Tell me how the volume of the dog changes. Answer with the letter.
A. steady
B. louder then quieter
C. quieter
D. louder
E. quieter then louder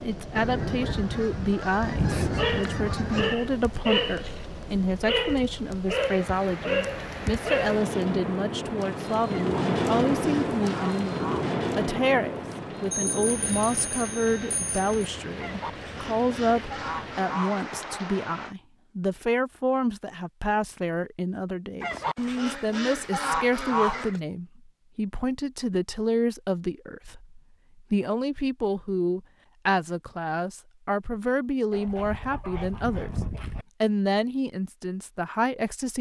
A.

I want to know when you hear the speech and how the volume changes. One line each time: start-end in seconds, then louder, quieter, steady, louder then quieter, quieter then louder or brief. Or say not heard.
0.0-33.1 steady
33.8-35.9 brief.